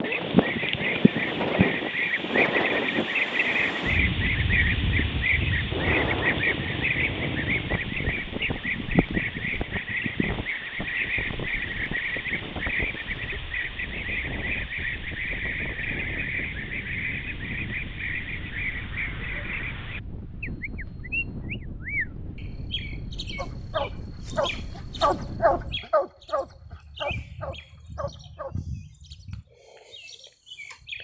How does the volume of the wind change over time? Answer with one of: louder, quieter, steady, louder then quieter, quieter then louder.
quieter.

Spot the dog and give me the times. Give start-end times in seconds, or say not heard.
23.4-28.6.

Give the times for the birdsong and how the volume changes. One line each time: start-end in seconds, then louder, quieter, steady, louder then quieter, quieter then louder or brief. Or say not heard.
0.0-30.9 quieter.